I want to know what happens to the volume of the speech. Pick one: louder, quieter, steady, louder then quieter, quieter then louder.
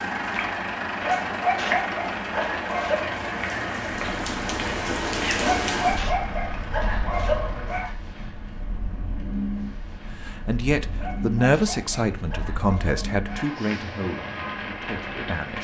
quieter.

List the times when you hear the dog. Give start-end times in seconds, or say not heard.
1.0-3.1, 5.4-8.0, 10.9-13.6.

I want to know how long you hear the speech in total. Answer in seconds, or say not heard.
5 s.